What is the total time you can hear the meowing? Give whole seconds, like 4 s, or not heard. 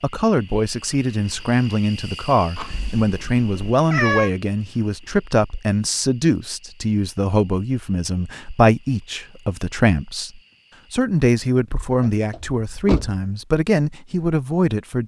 2 s.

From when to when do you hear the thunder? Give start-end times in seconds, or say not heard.
not heard.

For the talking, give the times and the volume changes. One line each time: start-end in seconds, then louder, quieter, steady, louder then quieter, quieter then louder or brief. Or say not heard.
0.0-15.0 steady.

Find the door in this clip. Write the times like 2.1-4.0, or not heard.
11.8-13.2.